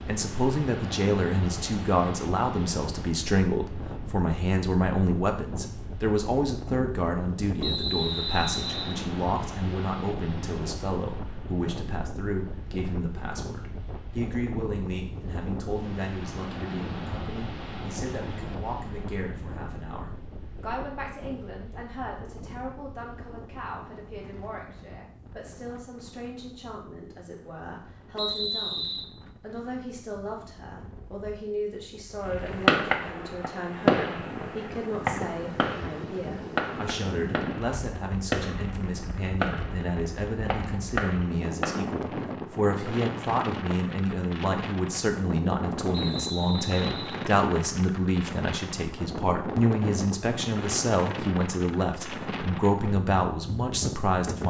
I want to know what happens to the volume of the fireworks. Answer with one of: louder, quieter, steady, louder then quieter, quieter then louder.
quieter.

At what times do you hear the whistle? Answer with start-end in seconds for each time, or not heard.
7.6-8.9, 28.1-29.1, 45.9-47.2.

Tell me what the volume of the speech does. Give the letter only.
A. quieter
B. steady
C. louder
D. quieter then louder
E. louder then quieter
D.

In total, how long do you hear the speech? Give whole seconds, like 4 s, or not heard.
54 s.